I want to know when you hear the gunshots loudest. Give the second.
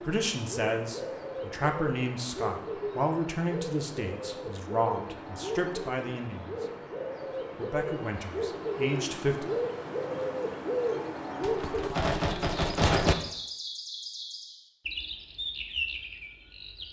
13 s.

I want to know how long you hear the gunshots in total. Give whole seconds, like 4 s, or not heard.
2 s.